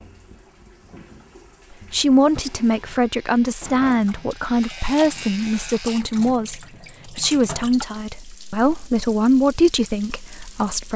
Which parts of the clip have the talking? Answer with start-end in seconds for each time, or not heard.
1.9-10.9.